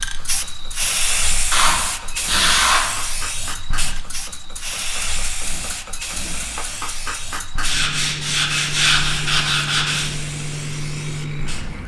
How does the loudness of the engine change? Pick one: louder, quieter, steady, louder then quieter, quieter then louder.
louder.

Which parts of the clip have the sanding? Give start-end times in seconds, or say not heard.
1.5-2.9, 7.6-10.1.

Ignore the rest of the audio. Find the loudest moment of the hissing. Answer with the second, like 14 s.
1 s.